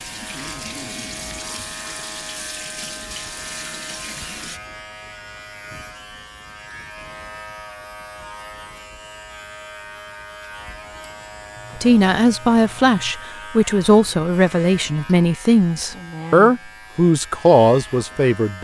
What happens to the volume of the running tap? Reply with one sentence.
The volume of the running tap stays about the same.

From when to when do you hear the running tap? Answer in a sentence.
The running tap can be heard from 0.0 to 4.6 s.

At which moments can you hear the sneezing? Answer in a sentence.
The sneezing can't be heard in this clip.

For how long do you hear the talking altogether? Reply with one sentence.
You can hear the talking for 7 seconds altogether.